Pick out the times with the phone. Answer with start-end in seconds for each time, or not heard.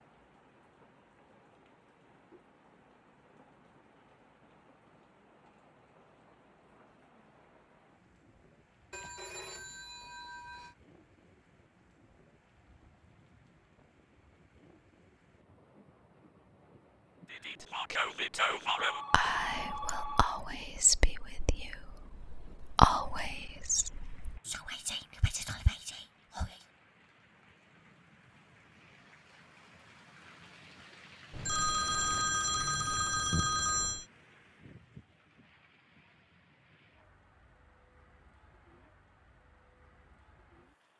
8.9-10.8, 18.8-20.4, 31.3-34.0.